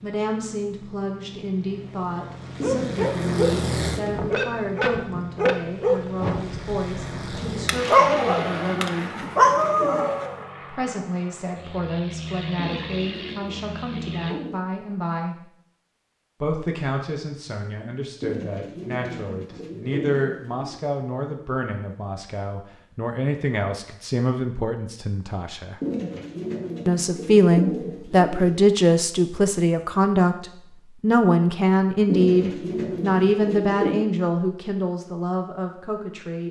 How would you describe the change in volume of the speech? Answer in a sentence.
The volume of the speech goes up.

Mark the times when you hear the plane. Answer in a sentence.
The plane can be heard from 0.0 to 14.3 s.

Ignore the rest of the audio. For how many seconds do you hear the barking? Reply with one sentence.
You can hear the barking for 8 seconds altogether.